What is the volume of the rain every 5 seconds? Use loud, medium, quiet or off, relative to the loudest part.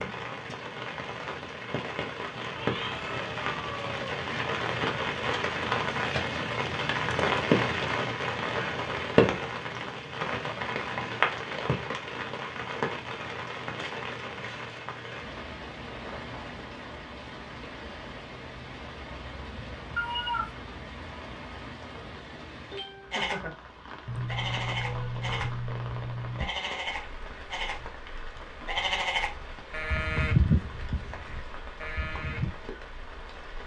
medium, loud, medium, quiet, quiet, quiet, quiet.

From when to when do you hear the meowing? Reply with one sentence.
The meowing can be heard from 2.5 to 4.0 s, from 19.9 to 20.6 s and from 24.1 to 26.4 s.